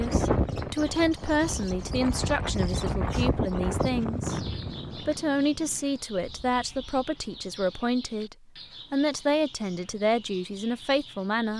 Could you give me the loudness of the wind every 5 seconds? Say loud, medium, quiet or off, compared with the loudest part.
loud, quiet, off.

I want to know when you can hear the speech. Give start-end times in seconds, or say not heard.
0.0-11.5.